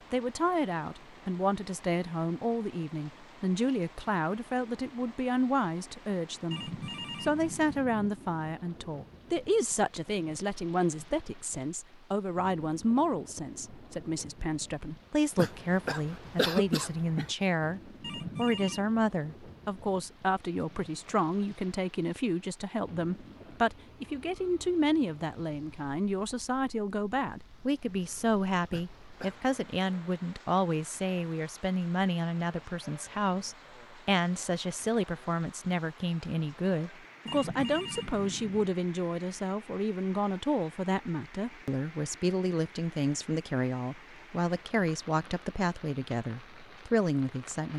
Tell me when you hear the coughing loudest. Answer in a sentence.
The volume of the coughing peaks at 17 seconds.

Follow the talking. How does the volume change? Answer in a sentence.
The volume of the talking stays about the same.